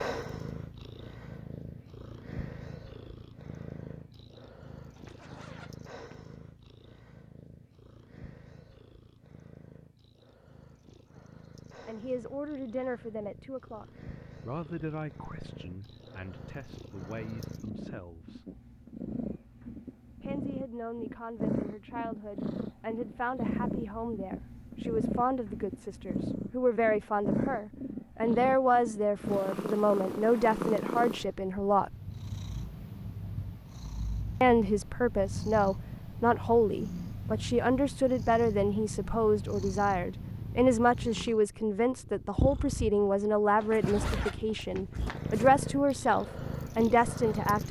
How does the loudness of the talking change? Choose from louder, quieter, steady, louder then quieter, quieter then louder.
louder.